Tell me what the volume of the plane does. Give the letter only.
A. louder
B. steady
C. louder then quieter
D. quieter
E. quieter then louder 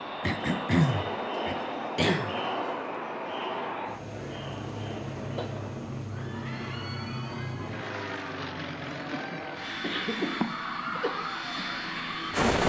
B.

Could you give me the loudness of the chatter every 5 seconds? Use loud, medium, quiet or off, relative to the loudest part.
loud, medium, medium.